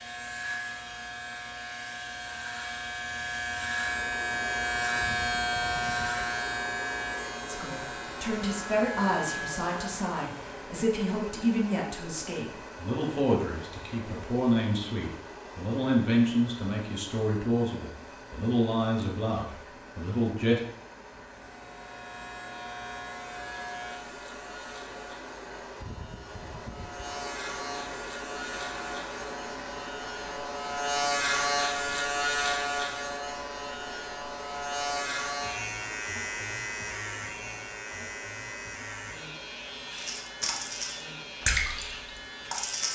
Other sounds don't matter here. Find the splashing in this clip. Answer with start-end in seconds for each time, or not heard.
39.9-42.9.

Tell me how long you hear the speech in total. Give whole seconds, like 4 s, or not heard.
13 s.